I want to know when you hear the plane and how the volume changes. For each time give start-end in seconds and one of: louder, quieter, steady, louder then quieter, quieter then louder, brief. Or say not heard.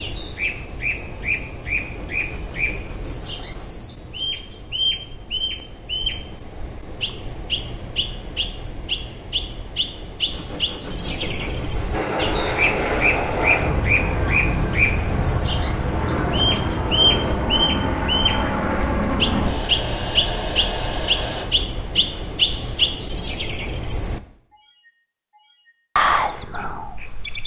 11.9-21.4 steady.